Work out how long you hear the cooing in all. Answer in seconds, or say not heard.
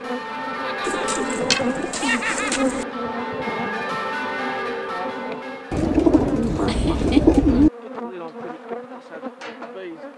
4 s.